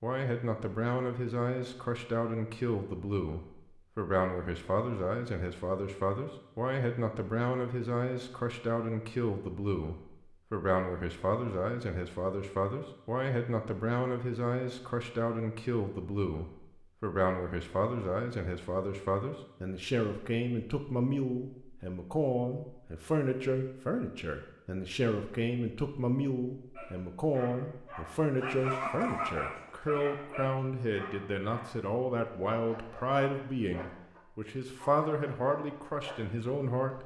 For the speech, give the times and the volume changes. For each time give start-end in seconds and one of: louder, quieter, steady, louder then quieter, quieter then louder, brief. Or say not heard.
0.0-37.0 steady.